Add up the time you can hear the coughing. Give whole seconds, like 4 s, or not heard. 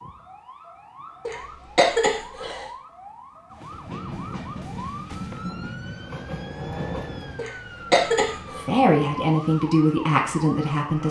3 s.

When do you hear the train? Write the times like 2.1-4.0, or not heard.
3.9-7.5.